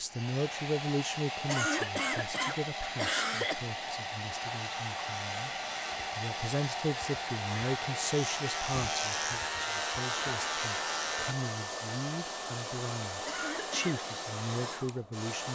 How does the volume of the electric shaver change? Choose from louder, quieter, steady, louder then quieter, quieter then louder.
louder.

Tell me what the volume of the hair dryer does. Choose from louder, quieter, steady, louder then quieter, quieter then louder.
steady.